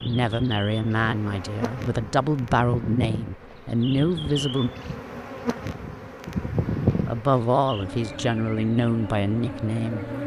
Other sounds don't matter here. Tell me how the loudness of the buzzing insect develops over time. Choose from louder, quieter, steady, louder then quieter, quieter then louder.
louder then quieter.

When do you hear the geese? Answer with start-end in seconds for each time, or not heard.
not heard.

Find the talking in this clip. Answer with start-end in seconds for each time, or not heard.
0.0-4.7, 7.0-10.1.